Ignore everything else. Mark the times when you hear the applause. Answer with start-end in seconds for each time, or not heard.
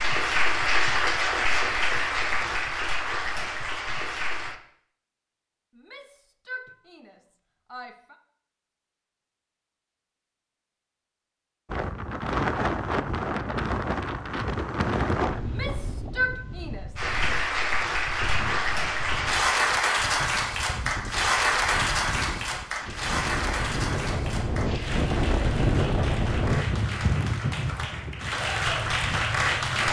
0.0-4.6, 16.9-29.8.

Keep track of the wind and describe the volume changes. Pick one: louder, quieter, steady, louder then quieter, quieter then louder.
quieter then louder.